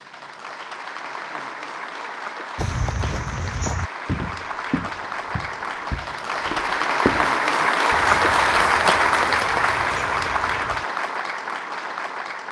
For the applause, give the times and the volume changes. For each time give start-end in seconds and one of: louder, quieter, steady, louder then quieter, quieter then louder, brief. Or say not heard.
0.0-12.4 louder then quieter.